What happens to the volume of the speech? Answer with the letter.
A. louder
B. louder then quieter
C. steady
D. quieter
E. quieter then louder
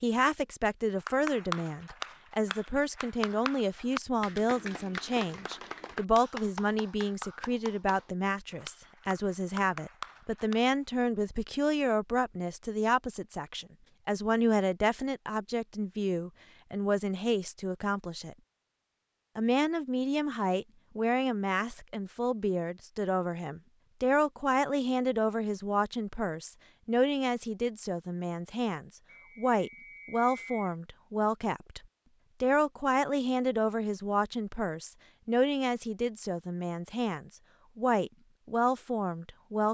C.